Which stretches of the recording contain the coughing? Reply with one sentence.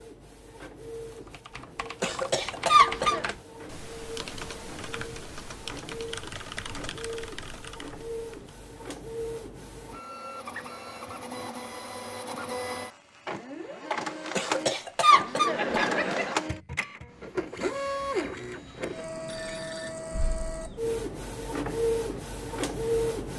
You can hear the coughing from 2.0 to 3.3 s and from 14.3 to 16.4 s.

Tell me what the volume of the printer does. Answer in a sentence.
The volume of the printer goes up.